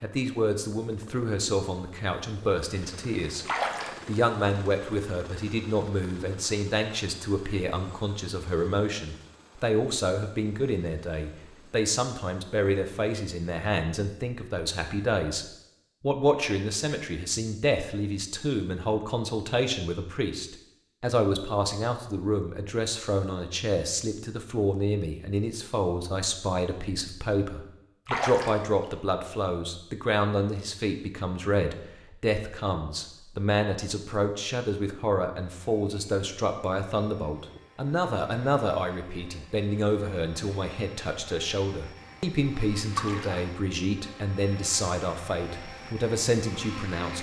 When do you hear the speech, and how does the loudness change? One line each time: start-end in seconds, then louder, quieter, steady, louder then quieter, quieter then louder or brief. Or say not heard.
0.0-47.1 steady.